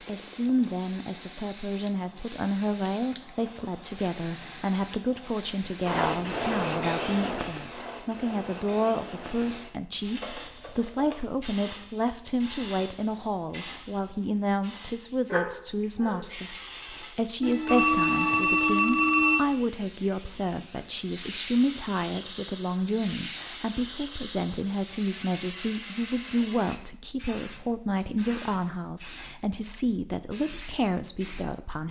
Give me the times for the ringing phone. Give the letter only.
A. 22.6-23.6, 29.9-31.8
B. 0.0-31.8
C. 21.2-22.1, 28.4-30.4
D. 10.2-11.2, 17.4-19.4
D.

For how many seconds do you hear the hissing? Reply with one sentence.
The hissing can be heard for 32 seconds in total.